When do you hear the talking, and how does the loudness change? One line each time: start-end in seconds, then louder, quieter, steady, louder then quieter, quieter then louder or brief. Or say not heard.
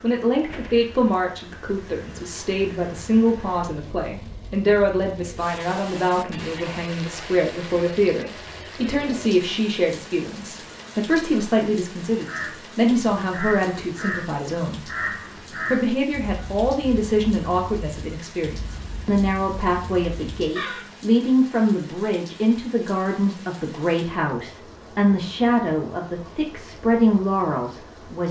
0.0-28.2 steady.